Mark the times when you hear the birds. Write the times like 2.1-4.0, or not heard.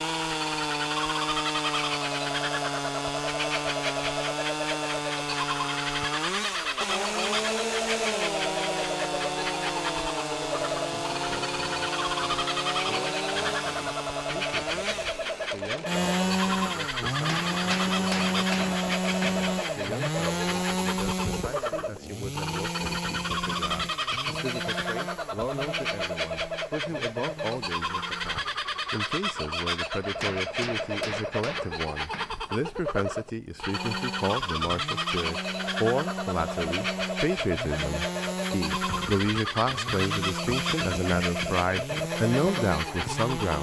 0.0-43.5.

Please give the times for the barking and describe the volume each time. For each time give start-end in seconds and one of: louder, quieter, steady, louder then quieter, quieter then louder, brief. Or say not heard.
not heard.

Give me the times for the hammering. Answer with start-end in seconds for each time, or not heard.
17.1-19.4, 29.9-32.3.